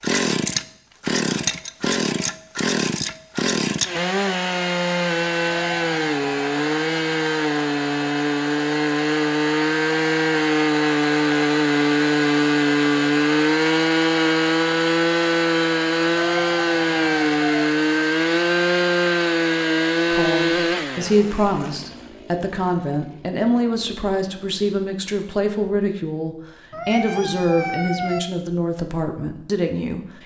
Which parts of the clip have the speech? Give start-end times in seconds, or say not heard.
20.1-30.2.